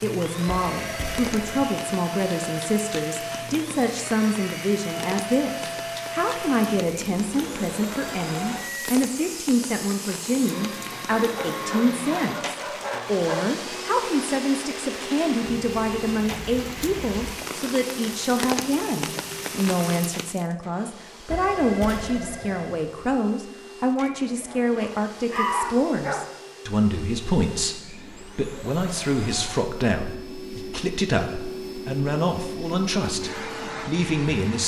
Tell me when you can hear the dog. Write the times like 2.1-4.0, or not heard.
11.3-13.6, 24.0-26.3.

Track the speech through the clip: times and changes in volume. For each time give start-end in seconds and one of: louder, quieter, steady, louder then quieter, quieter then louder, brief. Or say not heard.
0.0-34.6 steady.